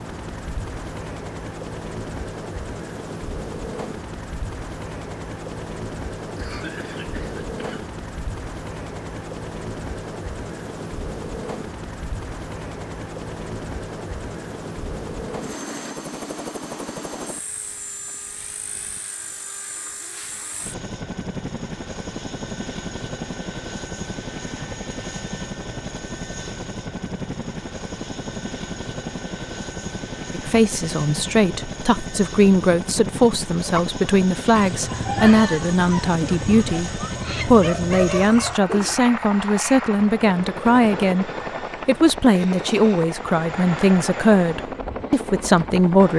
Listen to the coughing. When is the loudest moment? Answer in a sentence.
The loudest moment of the coughing is at 7 seconds.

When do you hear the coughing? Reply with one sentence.
The coughing can be heard from 6.3 to 7.9 s.